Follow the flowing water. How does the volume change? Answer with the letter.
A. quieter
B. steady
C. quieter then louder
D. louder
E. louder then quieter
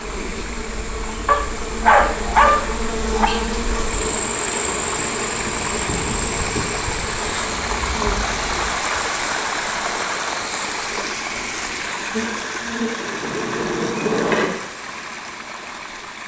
E.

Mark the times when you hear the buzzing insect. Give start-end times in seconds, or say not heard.
0.0-8.8, 12.1-14.5.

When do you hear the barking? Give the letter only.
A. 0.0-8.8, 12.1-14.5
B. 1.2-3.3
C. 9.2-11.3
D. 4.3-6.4
B.